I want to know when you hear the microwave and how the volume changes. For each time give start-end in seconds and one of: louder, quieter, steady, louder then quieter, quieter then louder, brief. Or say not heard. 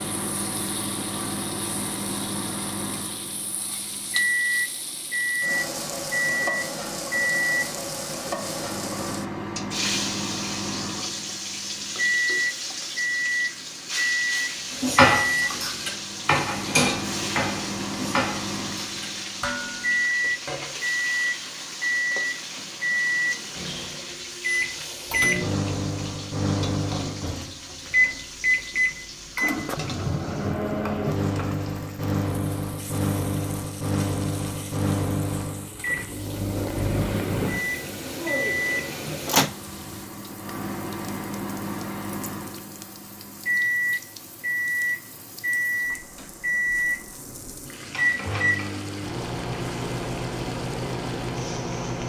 0.0-52.0 steady.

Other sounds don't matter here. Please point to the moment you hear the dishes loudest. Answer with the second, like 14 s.
15 s.